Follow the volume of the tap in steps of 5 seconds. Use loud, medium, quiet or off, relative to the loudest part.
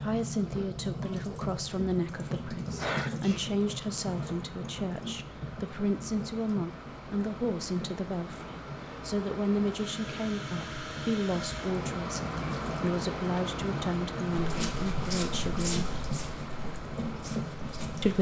loud, medium, loud, loud.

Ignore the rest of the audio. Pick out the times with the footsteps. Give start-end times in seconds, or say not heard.
14.3-18.1.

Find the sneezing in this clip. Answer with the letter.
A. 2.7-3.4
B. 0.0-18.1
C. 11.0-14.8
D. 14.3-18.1
A.